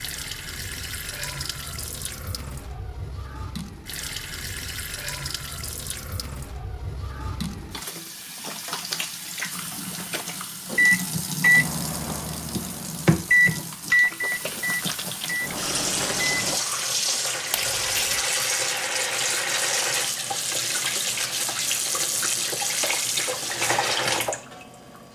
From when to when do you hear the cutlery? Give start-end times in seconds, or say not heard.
not heard.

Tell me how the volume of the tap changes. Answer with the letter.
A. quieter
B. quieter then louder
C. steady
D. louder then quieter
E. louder
E.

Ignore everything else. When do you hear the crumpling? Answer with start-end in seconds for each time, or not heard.
17.5-18.2.